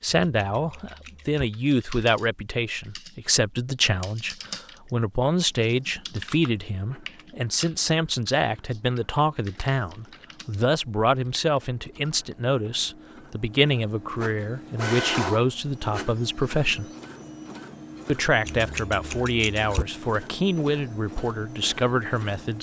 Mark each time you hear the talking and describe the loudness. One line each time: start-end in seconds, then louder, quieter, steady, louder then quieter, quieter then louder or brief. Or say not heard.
0.0-16.9 steady
18.1-22.5 steady.